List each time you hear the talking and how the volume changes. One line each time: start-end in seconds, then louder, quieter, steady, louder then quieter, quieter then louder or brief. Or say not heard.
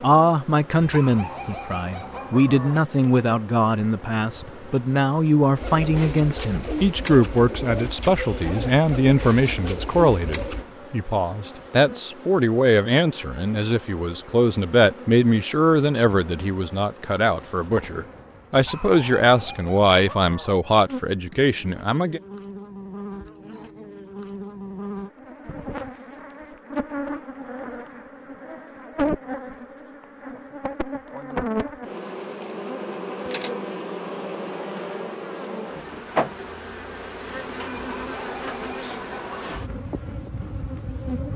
0.0-22.2 steady.